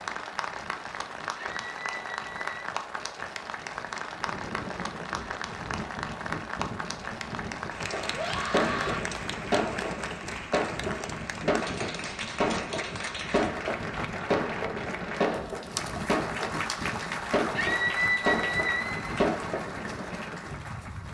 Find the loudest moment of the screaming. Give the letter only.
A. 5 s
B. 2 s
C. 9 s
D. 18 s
D.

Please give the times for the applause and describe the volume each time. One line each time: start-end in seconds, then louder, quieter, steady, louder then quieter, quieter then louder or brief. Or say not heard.
0.0-21.1 steady.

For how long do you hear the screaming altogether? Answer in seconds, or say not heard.
4 s.